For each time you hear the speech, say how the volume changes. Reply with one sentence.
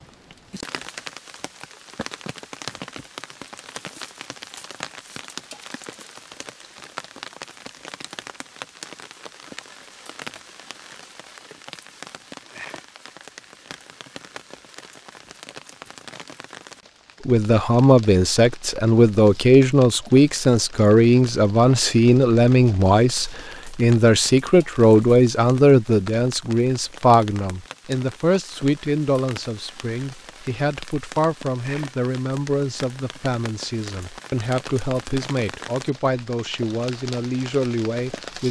You can hear the speech from 17.2 to 38.4 s, getting quieter.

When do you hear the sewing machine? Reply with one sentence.
The sewing machine can't be heard in this clip.